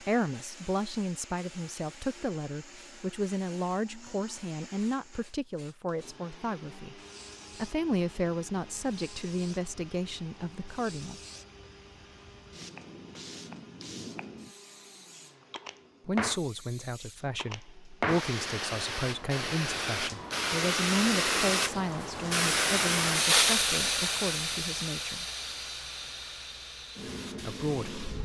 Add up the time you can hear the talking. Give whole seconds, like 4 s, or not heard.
21 s.